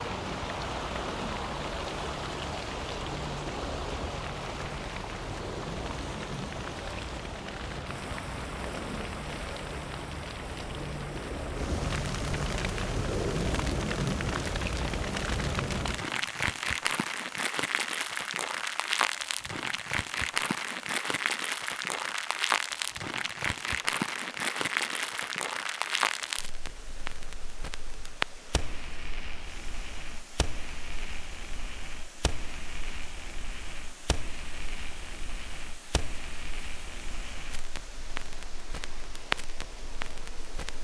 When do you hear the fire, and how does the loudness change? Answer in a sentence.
The fire can be heard from 0.0 to 40.7 s, getting louder then quieter.